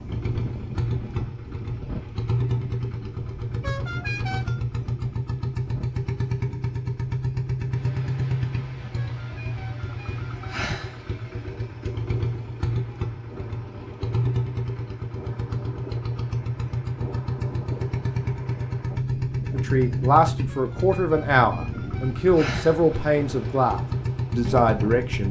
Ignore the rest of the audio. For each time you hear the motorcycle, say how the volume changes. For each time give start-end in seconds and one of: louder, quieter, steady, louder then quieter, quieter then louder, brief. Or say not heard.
0.0-25.2 steady.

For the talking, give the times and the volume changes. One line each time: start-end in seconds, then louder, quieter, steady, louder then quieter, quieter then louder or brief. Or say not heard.
19.5-25.2 steady.